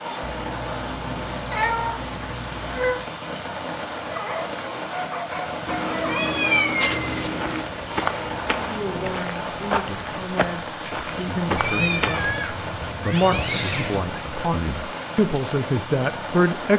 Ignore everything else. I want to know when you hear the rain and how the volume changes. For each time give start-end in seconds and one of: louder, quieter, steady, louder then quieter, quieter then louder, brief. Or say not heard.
0.0-16.7 steady.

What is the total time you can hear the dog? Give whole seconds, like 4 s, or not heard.
3 s.